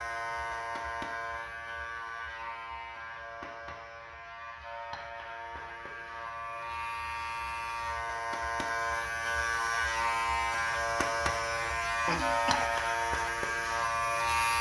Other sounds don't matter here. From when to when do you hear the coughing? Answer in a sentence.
You can hear the coughing from 12.1 to 12.7 s.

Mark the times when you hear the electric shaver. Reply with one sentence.
The electric shaver can be heard from 0.0 to 14.5 s.